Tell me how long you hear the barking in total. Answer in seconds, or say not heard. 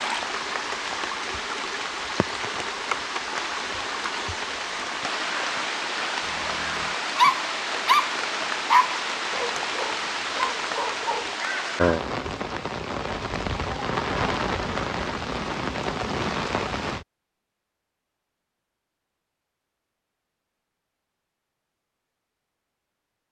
5 s.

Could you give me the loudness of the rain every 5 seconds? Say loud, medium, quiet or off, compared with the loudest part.
loud, loud, loud, loud, off.